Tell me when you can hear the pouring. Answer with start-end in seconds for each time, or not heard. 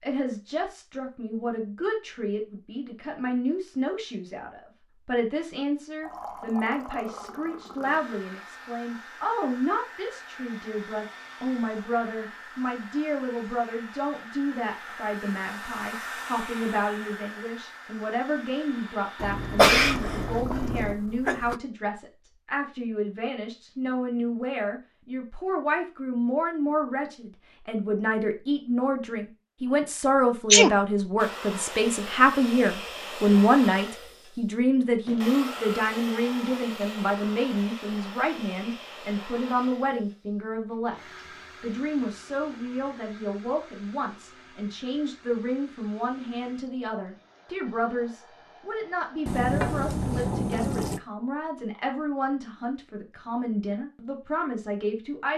6.0-8.0, 19.1-21.0, 49.2-51.0.